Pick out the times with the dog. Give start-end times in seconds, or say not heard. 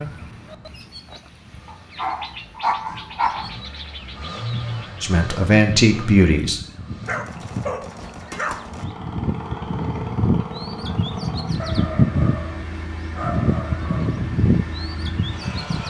1.6-3.5, 7.0-8.6, 11.6-14.2.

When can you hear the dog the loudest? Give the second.
3 s.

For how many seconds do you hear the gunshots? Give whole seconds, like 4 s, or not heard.
2 s.